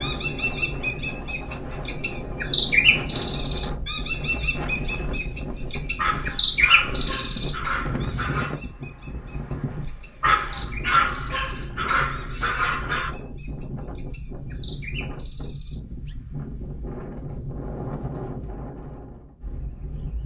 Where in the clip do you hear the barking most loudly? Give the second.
11 s.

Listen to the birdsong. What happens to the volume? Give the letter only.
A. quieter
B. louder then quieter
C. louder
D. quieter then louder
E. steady
A.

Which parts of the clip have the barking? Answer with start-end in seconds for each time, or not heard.
6.0-8.6, 10.2-13.1.